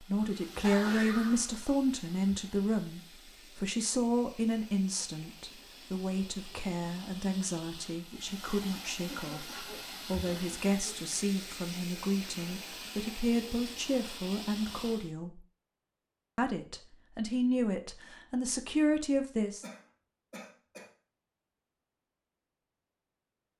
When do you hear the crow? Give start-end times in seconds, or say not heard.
not heard.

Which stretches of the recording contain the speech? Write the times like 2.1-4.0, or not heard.
0.0-15.4, 16.4-19.6.